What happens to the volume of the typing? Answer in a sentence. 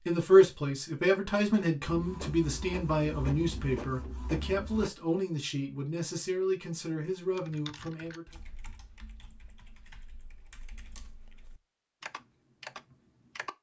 The volume of the typing goes down, then up.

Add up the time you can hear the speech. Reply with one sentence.
The speech can be heard for 8 seconds in total.